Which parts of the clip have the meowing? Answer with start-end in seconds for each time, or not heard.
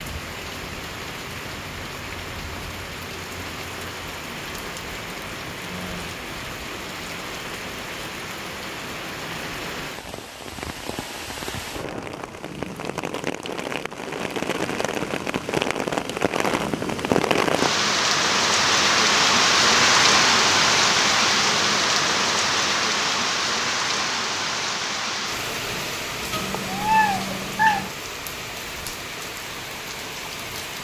26.3-27.9.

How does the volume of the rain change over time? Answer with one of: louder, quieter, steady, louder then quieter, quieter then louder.
louder then quieter.